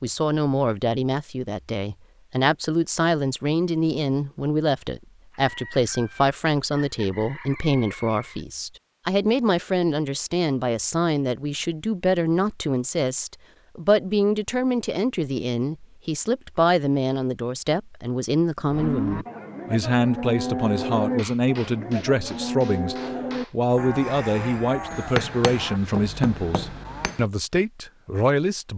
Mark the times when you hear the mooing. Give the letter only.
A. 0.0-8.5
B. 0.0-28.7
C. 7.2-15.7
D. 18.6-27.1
D.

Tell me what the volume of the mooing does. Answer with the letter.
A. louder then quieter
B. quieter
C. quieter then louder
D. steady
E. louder
B.